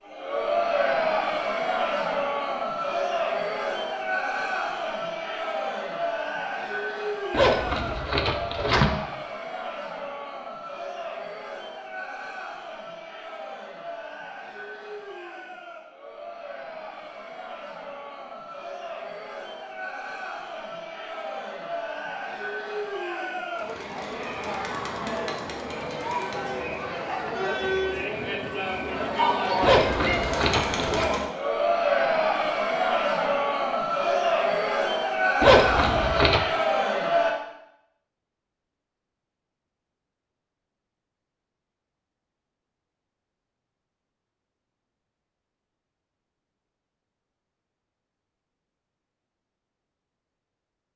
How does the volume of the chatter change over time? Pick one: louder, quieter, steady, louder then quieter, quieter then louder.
quieter then louder.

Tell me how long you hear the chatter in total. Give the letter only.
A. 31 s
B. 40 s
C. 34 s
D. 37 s
D.